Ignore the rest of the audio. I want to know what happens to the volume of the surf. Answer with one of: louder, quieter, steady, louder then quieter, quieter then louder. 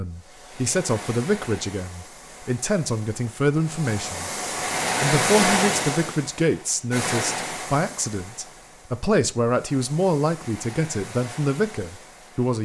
louder then quieter.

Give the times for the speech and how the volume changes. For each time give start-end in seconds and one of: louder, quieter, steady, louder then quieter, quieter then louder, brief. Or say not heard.
0.0-4.3 quieter then louder
5.0-12.6 steady.